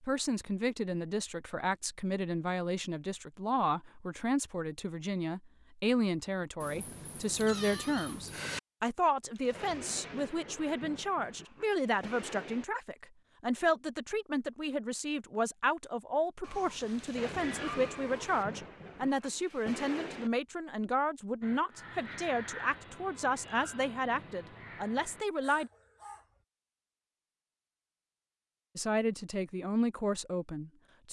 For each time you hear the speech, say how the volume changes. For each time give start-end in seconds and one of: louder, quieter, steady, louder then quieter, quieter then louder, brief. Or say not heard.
0.0-25.7 steady
28.8-31.0 brief.